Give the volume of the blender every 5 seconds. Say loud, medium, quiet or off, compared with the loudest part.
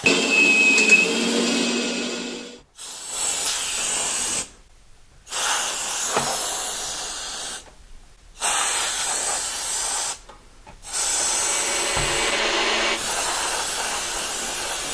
loud, off, medium.